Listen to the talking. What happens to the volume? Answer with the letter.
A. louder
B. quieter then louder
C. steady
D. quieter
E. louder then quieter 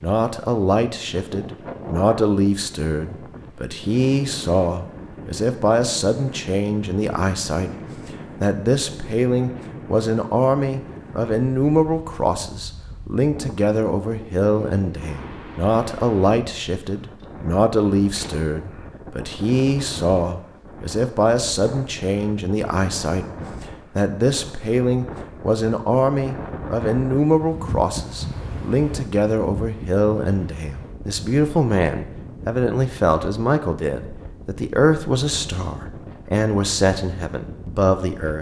C.